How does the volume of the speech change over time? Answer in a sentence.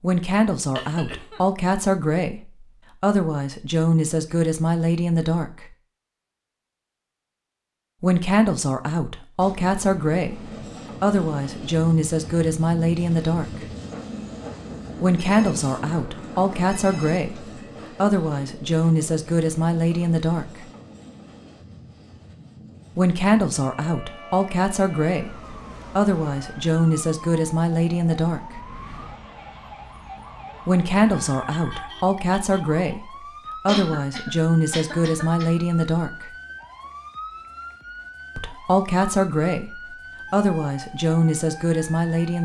The loudness of the speech stays about the same.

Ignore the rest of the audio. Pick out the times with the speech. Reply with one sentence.
The speech can be heard from 0.0 to 5.7 s, from 8.0 to 13.7 s, from 15.0 to 20.6 s, from 22.9 to 28.6 s, from 30.6 to 36.3 s and from 38.4 to 42.4 s.